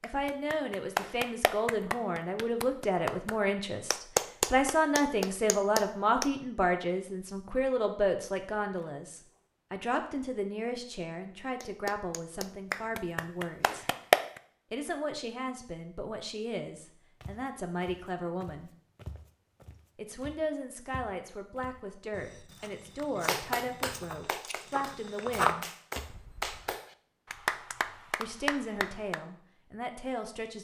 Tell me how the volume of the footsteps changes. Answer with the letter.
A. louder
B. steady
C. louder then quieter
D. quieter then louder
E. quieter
D.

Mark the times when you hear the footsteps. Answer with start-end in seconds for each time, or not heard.
17.2-26.1.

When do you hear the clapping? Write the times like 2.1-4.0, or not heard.
0.0-6.3, 11.6-14.4, 22.9-29.2.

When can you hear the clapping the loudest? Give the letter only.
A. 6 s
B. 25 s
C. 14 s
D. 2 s
C.